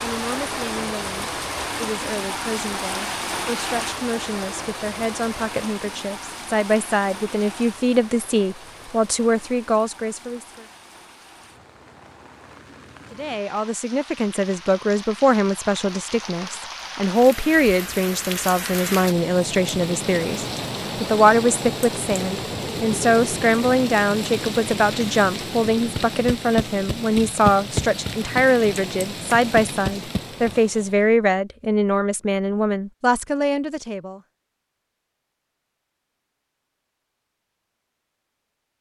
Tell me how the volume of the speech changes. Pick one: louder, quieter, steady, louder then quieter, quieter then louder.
louder.